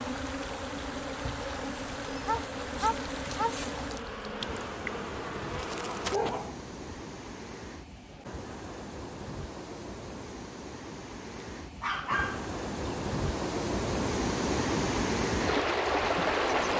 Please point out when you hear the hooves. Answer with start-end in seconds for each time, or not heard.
not heard.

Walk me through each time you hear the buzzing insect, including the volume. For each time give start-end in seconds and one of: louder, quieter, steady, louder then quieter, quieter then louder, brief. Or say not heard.
0.0-6.2 steady.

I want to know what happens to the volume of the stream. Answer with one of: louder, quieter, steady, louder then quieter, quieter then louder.
louder.